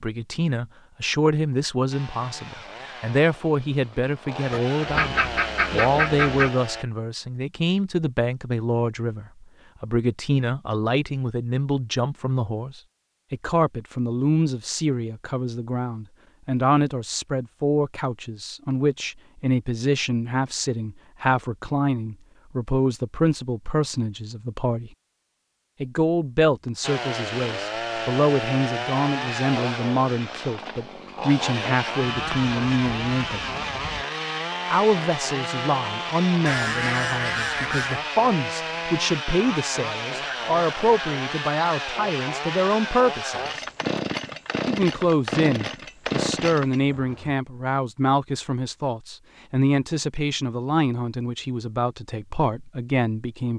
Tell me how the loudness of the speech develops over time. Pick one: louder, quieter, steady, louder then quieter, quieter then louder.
steady.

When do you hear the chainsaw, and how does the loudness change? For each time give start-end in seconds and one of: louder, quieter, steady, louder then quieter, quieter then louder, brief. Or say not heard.
1.9-6.8 quieter then louder
26.8-47.4 steady.